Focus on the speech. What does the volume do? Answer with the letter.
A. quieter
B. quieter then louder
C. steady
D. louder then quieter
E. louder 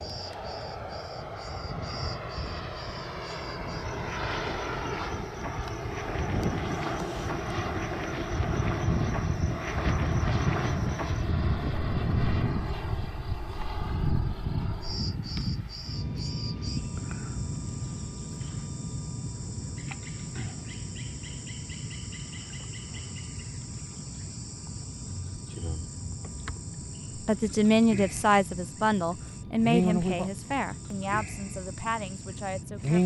A.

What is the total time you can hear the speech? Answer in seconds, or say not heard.
6 s.